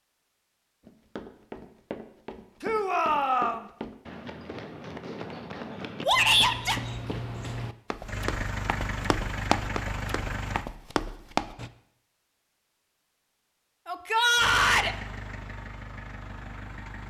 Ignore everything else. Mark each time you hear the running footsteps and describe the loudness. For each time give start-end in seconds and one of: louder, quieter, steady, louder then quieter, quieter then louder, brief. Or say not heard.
0.8-11.7 louder.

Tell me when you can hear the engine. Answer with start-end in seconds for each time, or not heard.
8.1-10.7, 14.3-17.0.